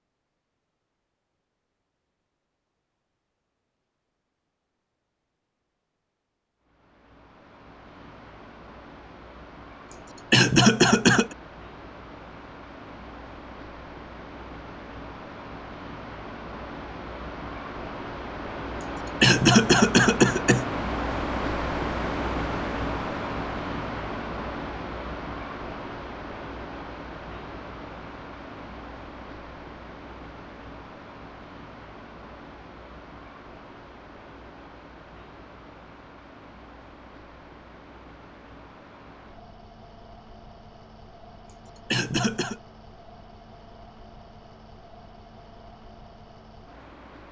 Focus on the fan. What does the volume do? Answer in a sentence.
The volume of the fan goes up, then down.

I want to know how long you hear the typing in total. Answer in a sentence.
You can't hear the typing here.